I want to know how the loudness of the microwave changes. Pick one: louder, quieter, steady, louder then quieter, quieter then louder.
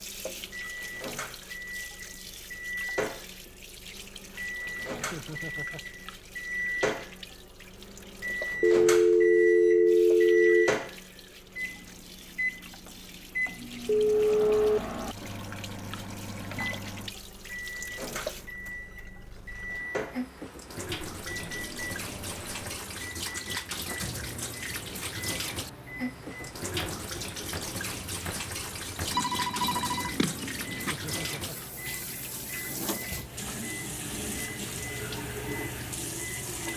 quieter.